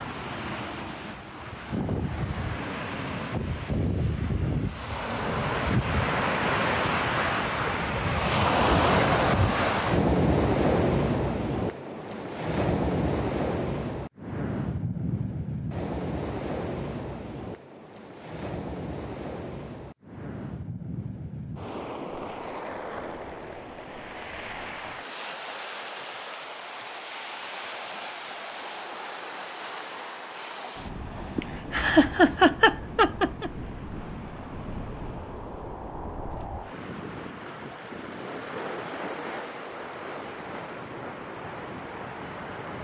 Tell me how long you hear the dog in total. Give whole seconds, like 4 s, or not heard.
not heard.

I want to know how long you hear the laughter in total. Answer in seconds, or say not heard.
2 s.